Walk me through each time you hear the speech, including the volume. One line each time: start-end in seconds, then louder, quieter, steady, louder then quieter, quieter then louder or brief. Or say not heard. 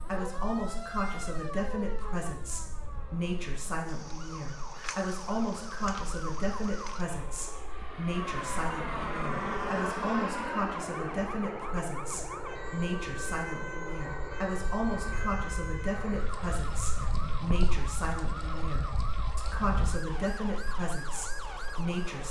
0.1-22.2 steady.